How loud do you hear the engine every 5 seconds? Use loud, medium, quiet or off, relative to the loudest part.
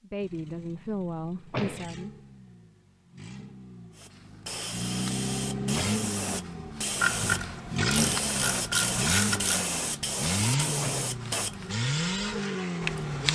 quiet, loud, loud.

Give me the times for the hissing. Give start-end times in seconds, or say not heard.
4.0-13.3.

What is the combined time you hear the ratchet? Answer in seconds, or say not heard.
3 s.